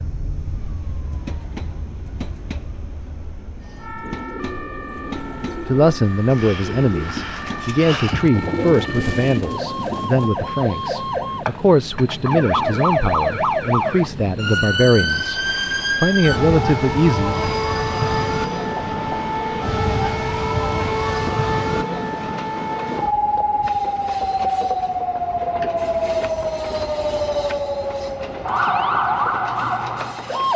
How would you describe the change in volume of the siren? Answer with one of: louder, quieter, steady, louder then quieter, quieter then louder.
louder.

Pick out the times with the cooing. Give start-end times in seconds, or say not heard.
4.0-10.3.